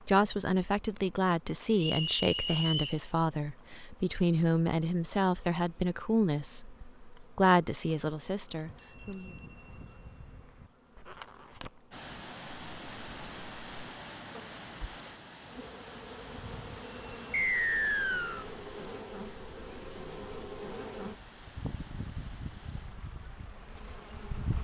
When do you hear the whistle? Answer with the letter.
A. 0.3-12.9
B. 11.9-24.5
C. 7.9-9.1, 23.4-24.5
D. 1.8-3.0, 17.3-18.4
D.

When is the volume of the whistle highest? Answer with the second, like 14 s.
18 s.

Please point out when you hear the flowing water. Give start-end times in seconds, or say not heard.
11.9-24.5.